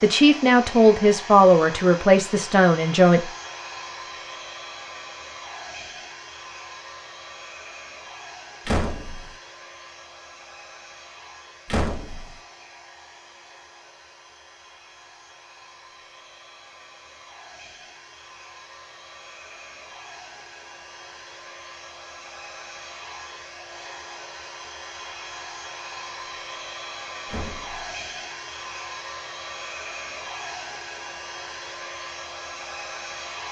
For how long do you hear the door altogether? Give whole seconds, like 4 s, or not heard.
2 s.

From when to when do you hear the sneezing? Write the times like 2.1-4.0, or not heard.
not heard.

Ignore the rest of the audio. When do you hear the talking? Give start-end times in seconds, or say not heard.
0.0-3.3.